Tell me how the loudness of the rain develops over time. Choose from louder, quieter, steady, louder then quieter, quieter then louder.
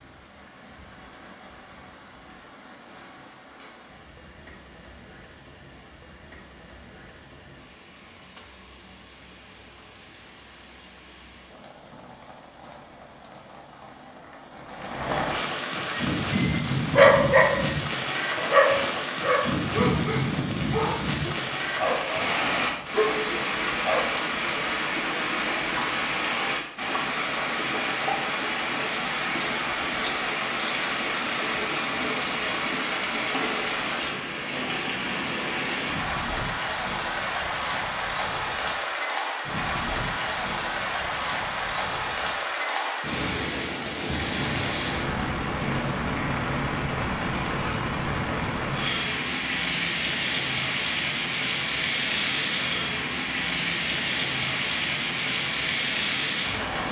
louder.